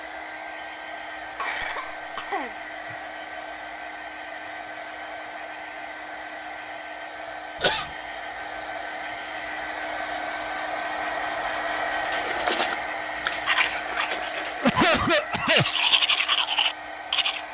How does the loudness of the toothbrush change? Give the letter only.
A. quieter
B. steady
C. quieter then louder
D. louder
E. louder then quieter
C.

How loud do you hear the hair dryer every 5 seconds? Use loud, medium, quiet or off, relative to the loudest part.
medium, medium, loud, medium.